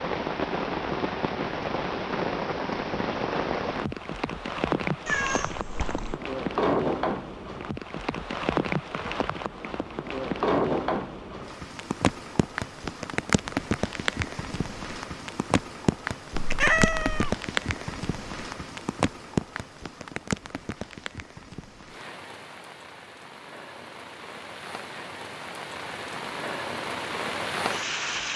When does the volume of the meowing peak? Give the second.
17 s.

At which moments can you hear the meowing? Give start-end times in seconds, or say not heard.
5.0-6.2, 16.4-17.4.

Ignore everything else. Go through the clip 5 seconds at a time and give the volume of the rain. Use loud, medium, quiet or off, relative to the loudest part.
loud, loud, loud, loud, medium, loud.